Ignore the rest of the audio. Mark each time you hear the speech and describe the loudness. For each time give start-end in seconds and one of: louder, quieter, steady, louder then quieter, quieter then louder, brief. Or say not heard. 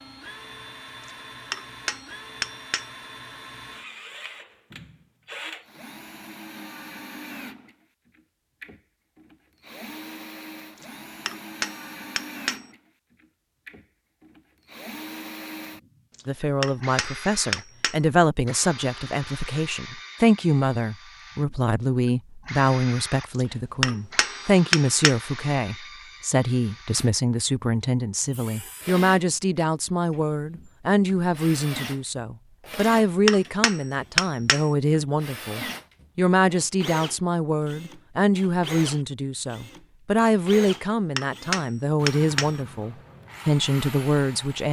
16.2-44.6 steady.